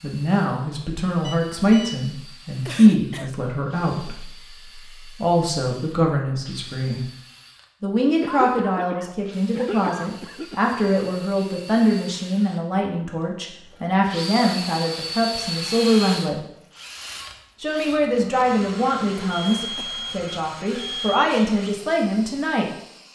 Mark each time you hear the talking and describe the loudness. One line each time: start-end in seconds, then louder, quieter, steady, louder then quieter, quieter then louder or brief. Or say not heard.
0.0-7.0 louder then quieter
7.8-16.4 steady
17.6-22.7 quieter then louder.